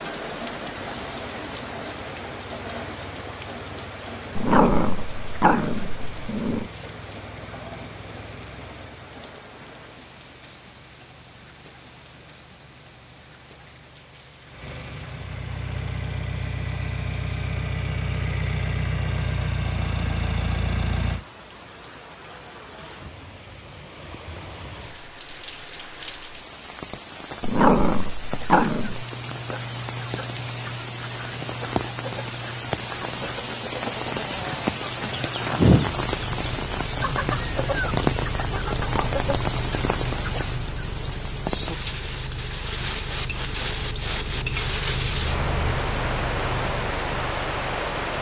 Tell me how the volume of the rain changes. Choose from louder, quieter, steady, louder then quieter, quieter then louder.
quieter then louder.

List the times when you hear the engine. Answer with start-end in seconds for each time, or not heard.
0.0-21.2, 36.1-48.1.